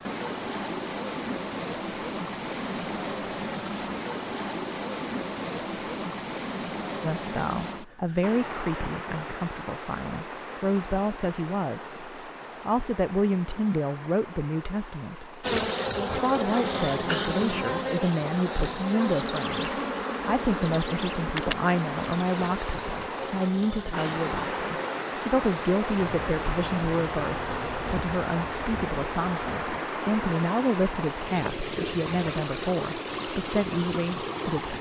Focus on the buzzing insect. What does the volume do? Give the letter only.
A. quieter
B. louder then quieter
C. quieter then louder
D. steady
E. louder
A.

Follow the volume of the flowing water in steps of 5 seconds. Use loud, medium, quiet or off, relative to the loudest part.
loud, loud, medium, medium, loud, loud, loud.